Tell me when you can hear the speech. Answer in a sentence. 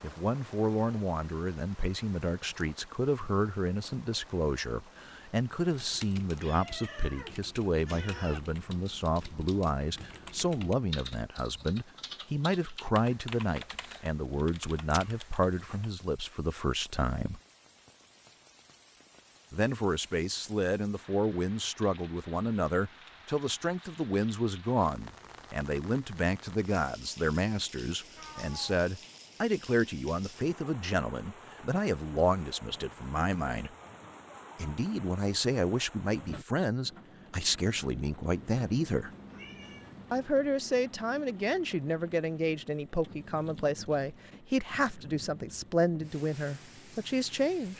You can hear the speech from 0.0 to 17.4 s, from 19.5 to 33.7 s, from 34.5 to 39.1 s and from 40.1 to 47.7 s.